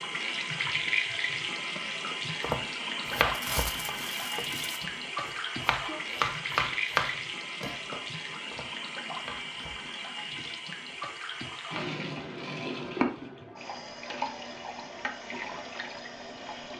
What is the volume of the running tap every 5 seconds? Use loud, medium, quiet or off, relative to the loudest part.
loud, loud, loud, medium.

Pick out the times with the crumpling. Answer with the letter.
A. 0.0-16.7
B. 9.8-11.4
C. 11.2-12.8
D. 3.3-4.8
D.